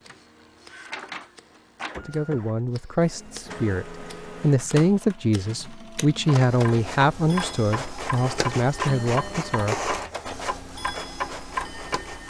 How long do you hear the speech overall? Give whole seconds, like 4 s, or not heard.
8 s.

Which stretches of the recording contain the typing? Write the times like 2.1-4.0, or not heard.
not heard.